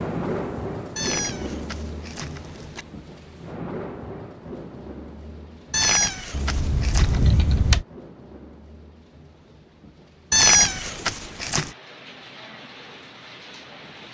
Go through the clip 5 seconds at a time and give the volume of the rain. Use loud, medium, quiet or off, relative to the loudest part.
loud, medium, medium.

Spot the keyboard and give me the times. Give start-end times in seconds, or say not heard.
6.3-7.8.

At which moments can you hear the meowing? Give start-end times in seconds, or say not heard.
0.9-2.9, 5.7-7.2, 10.3-11.7.